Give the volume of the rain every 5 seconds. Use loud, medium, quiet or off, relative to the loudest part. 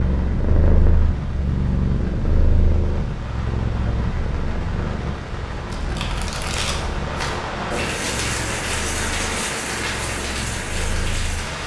medium, loud, loud.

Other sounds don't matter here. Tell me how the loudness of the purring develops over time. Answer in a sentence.
The volume of the purring goes down.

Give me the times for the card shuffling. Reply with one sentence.
You can hear the card shuffling from 5.7 to 7.4 s.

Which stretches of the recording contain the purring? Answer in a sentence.
You can hear the purring from 0.0 to 11.6 s.